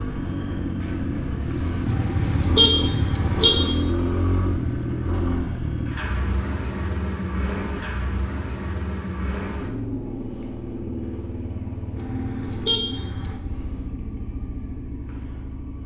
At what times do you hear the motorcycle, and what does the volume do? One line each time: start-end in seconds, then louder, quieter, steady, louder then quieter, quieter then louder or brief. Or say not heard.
0.0-15.8 quieter.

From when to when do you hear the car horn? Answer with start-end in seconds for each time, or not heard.
1.9-3.5, 11.9-13.4.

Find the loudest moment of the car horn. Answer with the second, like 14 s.
3 s.